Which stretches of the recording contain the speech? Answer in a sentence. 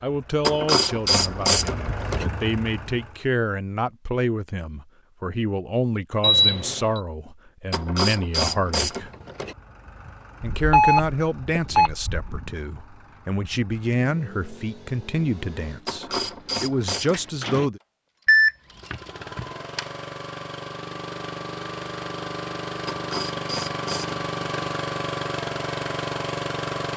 You can hear the speech from 0.0 to 9.1 s and from 10.4 to 17.8 s.